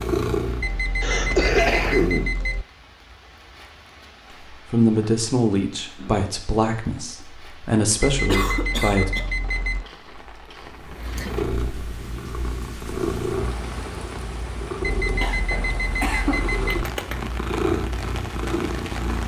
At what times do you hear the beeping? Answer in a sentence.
The beeping can be heard from 0.6 to 2.6 s, from 8.0 to 9.8 s and from 14.8 to 16.9 s.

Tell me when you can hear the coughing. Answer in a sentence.
The coughing can be heard from 1.0 to 2.3 s, from 8.2 to 9.3 s and from 15.2 to 16.4 s.